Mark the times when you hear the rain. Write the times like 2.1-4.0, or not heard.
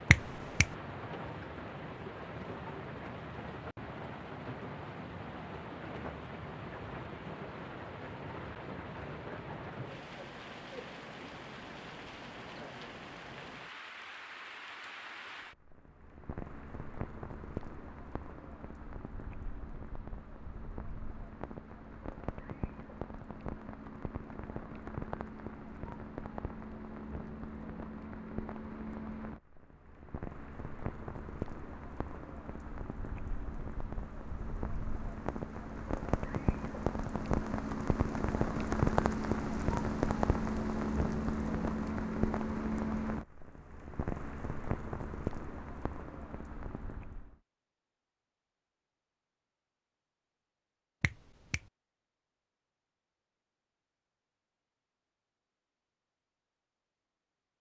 0.0-47.4.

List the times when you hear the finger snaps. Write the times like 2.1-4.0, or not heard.
0.1-0.7, 51.0-51.6.